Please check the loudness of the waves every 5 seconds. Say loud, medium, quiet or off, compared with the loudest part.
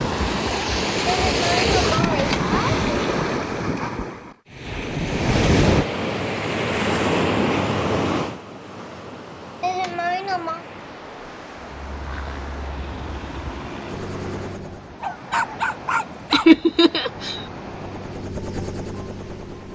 loud, loud, quiet, quiet.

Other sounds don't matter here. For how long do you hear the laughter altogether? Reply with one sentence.
You can hear the laughter for 4 seconds altogether.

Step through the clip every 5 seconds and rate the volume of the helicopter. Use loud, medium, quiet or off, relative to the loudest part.
off, off, loud, loud.